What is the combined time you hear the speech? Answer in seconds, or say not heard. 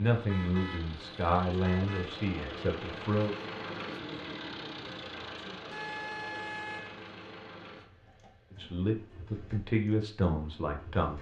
6 s.